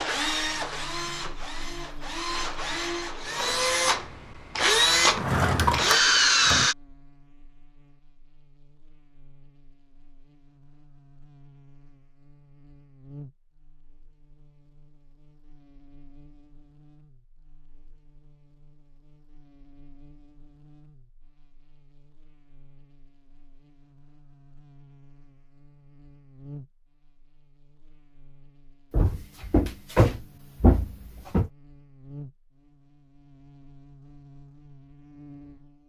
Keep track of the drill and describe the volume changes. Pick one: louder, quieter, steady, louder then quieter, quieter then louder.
louder.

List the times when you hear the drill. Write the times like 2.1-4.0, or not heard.
0.0-6.8.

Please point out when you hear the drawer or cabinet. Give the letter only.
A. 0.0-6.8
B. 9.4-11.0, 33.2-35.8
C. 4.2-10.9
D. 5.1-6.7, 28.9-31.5
D.